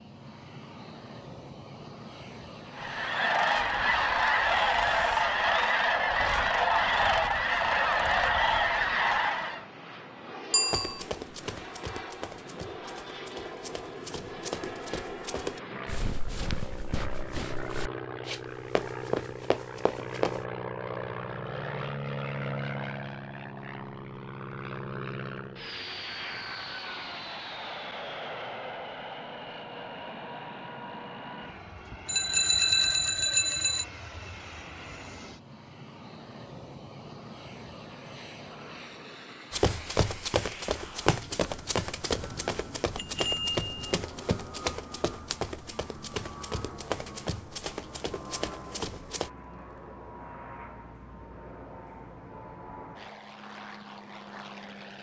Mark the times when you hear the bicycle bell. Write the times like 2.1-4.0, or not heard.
10.5-11.0, 32.0-33.9, 43.0-43.8.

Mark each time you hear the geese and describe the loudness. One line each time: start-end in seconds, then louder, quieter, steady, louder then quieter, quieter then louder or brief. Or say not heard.
2.8-9.7 steady.